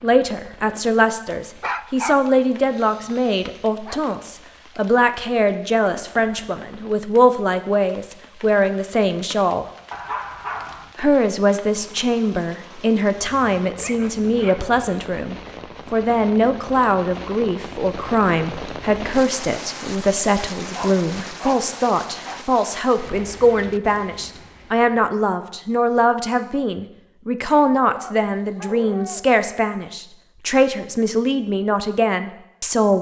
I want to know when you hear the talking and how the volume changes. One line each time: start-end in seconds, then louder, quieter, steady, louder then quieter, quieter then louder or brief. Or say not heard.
0.0-9.7 steady
10.9-32.9 steady.